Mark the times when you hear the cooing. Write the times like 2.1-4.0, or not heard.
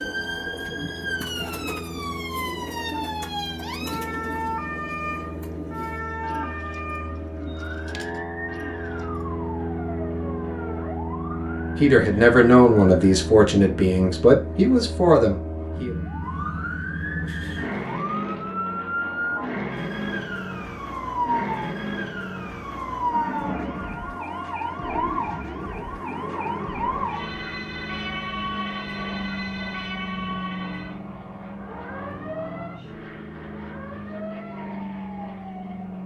0.0-9.3.